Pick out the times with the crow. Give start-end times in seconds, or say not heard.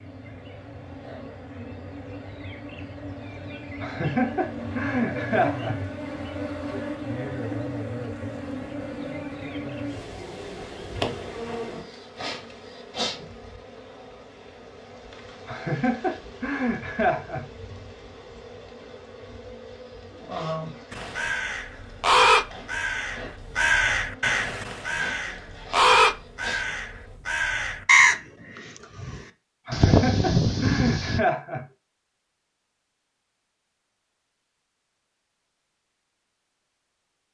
20.9-31.2.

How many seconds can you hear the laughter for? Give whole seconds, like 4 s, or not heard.
6 s.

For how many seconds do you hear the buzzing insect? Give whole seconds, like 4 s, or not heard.
27 s.